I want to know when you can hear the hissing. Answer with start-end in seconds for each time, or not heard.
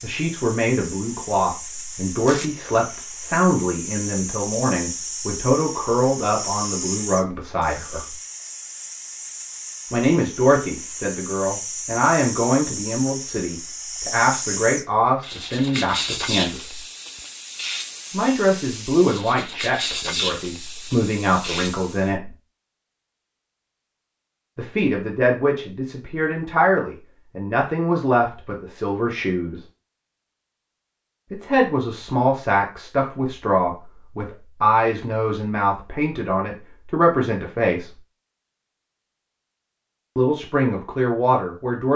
0.0-22.1.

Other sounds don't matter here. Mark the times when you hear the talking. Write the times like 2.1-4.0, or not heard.
0.0-8.2, 9.9-16.8, 18.1-22.3, 24.6-29.6, 31.3-37.9, 40.1-41.9.